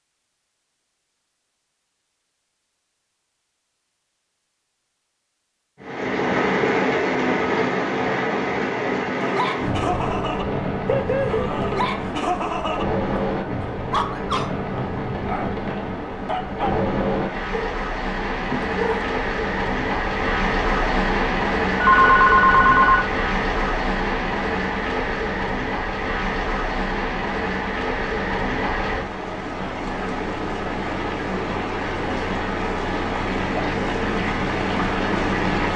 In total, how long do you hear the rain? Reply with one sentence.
The rain can be heard for 30 seconds in total.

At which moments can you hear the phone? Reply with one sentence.
The phone can be heard from 21.8 to 23.1 s.